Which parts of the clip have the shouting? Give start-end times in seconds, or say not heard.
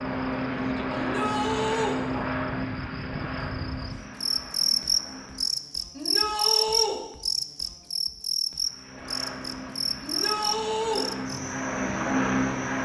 0.9-2.0, 6.0-7.0, 10.0-11.1.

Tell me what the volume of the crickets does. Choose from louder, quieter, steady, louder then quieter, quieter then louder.
louder then quieter.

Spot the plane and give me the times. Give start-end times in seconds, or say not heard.
0.0-5.7, 8.6-12.8.